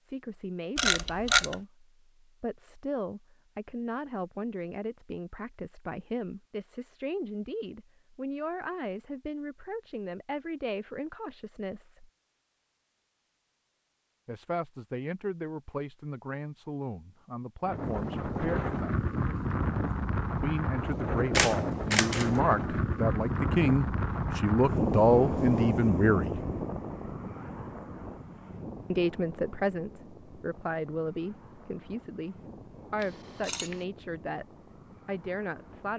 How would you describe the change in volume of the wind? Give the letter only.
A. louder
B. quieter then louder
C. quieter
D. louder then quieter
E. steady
C.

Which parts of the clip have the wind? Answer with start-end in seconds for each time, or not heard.
17.6-35.9.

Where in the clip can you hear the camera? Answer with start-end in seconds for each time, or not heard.
0.8-1.6, 21.3-22.4, 33.0-33.9.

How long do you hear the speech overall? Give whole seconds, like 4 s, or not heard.
29 s.